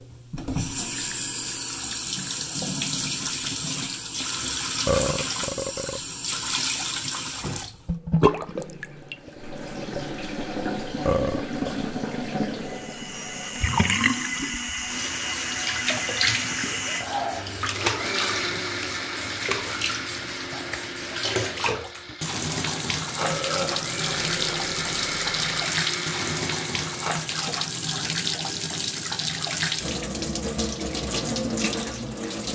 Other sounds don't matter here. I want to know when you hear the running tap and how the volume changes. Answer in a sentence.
The running tap can be heard from 0.0 to 32.5 s, at a steady volume.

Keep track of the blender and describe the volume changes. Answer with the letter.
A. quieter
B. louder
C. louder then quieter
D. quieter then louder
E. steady
D.